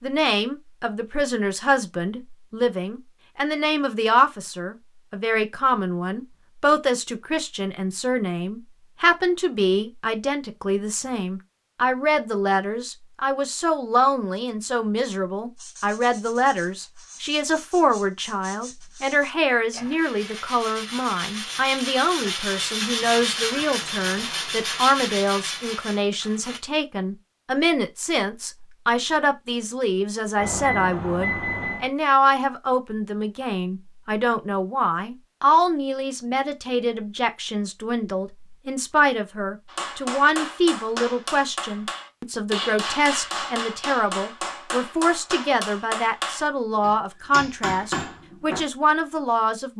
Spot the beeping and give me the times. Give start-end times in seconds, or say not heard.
30.4-31.9.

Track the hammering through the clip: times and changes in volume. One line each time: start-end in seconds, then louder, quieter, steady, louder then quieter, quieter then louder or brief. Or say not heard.
39.6-48.6 steady.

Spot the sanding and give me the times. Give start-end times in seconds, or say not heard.
15.6-26.6.